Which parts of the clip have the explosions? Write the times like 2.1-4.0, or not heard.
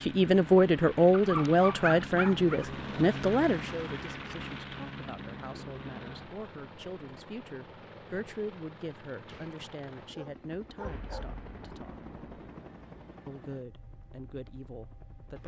10.8-13.3.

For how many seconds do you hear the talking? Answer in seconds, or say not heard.
14 s.